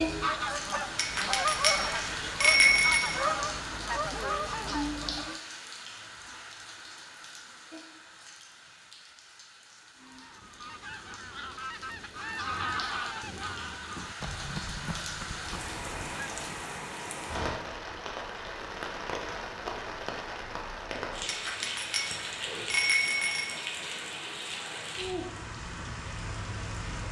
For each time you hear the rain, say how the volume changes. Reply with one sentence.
The rain can be heard from 0.0 to 27.0 s, getting quieter then louder.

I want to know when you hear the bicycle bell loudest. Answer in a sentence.
The volume of the bicycle bell peaks at 3 seconds.